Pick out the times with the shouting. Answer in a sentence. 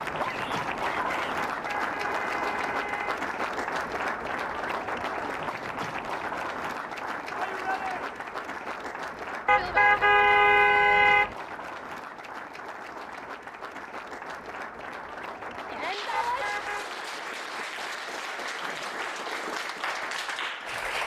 You can hear the shouting from 0.1 to 1.4 s, from 7.3 to 8.0 s and from 15.7 to 16.4 s.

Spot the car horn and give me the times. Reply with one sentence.
The car horn can be heard from 1.6 to 3.2 s, from 9.4 to 11.3 s and from 16.1 to 16.9 s.